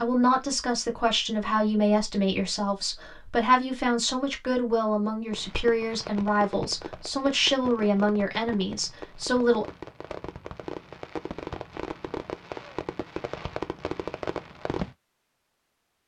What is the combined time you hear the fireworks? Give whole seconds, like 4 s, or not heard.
10 s.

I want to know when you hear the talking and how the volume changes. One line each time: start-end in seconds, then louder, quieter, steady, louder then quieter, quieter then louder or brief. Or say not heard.
0.0-9.7 steady.